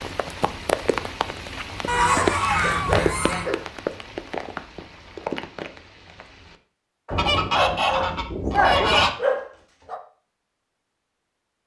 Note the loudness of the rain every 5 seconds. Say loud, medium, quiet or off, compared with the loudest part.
loud, medium, off.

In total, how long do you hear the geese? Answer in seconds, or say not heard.
4 s.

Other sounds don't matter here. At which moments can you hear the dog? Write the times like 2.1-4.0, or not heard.
2.1-3.6, 7.0-10.0.